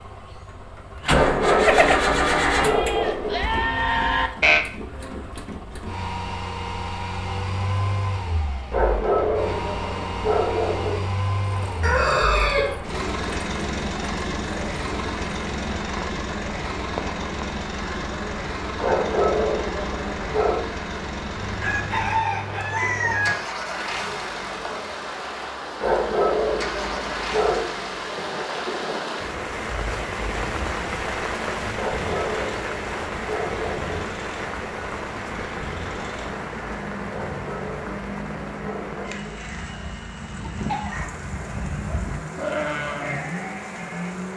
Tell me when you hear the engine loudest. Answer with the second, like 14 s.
2 s.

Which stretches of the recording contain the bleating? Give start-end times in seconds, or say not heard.
1.6-4.7, 39.5-44.1.